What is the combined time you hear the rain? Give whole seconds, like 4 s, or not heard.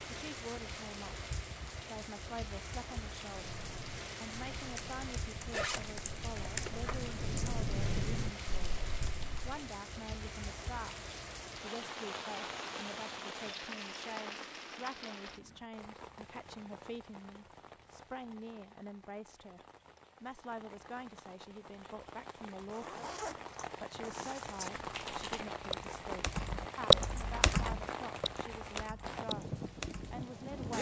31 s.